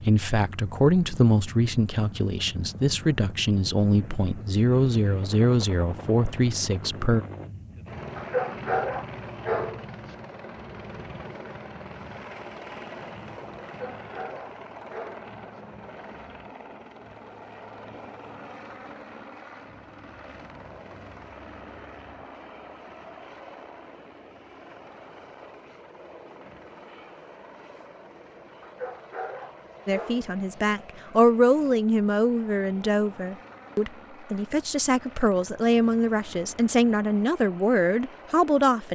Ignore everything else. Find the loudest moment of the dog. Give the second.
9 s.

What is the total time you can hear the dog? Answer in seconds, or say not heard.
6 s.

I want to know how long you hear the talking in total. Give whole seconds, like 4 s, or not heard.
16 s.